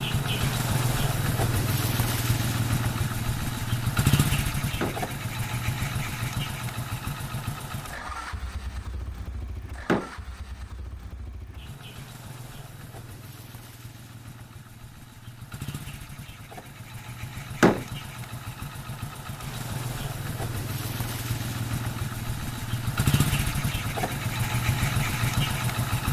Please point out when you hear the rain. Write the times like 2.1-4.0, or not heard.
not heard.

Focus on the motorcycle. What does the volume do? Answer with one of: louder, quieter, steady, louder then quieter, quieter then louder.
quieter then louder.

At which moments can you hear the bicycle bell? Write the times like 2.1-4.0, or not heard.
not heard.